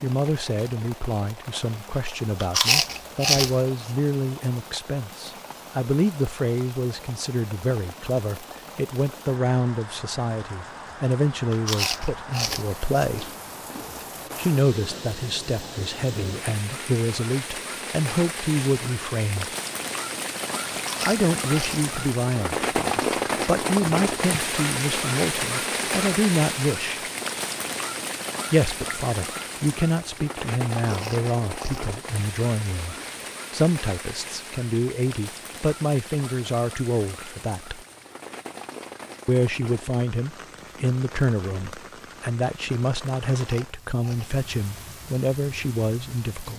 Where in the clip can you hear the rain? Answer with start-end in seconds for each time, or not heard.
0.0-46.5.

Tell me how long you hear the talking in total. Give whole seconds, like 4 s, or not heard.
41 s.